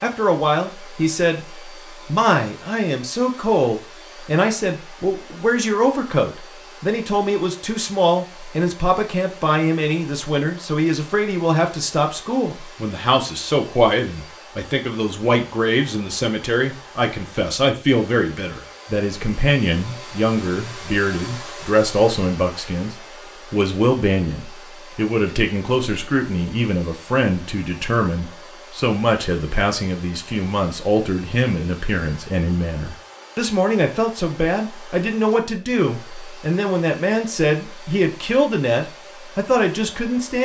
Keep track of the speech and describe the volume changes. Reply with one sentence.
The loudness of the speech stays about the same.